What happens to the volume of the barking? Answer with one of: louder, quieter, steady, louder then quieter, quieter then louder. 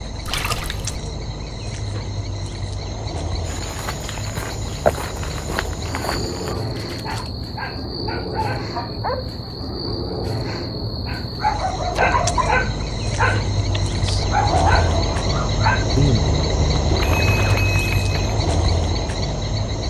louder.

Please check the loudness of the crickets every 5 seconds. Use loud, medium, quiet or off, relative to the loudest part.
medium, medium, loud, loud.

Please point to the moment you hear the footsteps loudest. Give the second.
5 s.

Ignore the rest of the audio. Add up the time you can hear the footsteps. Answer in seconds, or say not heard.
3 s.